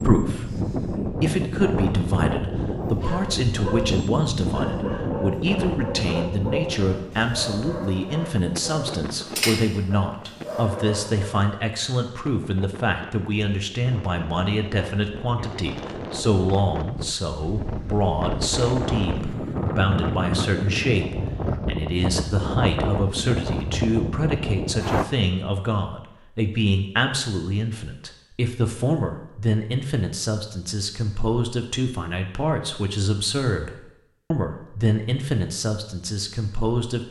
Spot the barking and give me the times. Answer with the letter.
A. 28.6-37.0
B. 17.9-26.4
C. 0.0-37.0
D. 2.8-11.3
D.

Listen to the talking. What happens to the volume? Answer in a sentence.
The loudness of the talking stays about the same.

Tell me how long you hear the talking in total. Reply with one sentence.
You can hear the talking for 37 seconds altogether.